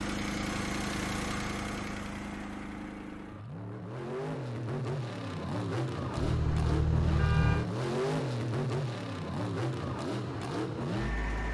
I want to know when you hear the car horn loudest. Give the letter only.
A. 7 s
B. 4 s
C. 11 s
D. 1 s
A.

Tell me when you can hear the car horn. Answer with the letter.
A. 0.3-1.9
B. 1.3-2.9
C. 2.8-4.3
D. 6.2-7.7
D.